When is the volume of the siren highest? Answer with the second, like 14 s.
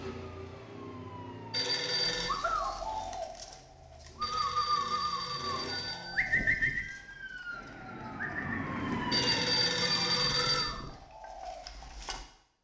9 s.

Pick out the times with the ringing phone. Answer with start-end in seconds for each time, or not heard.
1.5-2.4, 4.2-6.2, 9.1-10.7.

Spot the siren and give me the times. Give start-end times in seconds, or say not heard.
0.1-1.6, 5.9-10.4.